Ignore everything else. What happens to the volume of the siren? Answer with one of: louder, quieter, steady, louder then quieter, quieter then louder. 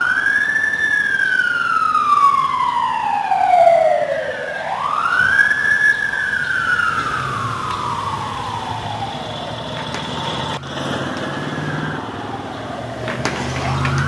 quieter.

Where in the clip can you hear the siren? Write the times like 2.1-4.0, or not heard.
0.0-14.0.